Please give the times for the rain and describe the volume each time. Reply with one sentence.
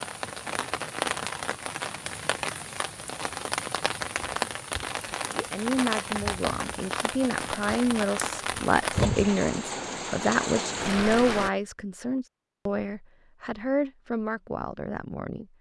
The rain can be heard from 0.0 to 11.5 s, at a steady volume.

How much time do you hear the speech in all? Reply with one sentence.
You can hear the speech for 10 seconds altogether.